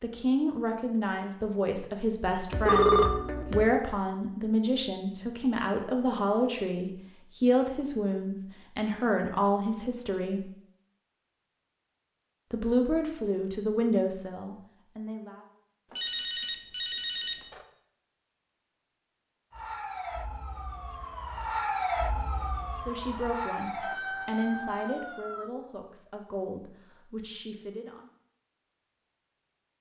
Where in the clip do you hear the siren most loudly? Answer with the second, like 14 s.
22 s.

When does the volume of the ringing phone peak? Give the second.
3 s.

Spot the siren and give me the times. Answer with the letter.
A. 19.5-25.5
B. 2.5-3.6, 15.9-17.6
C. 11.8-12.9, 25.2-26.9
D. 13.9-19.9
A.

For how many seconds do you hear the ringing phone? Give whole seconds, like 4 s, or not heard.
3 s.